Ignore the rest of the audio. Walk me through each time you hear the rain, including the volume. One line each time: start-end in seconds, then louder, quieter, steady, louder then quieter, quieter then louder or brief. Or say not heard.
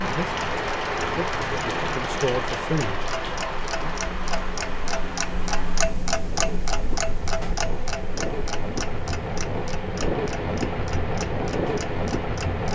0.0-12.7 quieter then louder.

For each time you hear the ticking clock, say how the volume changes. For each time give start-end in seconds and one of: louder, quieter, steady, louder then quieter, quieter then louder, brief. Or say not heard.
0.0-12.7 louder then quieter.